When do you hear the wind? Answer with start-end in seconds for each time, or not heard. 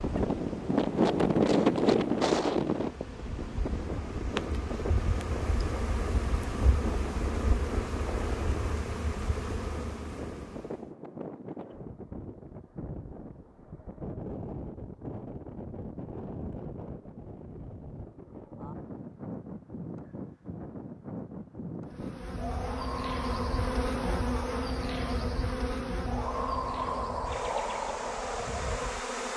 0.0-29.1.